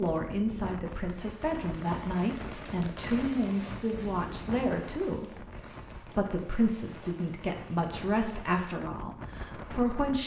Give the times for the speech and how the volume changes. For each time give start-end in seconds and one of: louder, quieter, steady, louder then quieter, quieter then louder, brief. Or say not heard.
0.0-10.2 steady.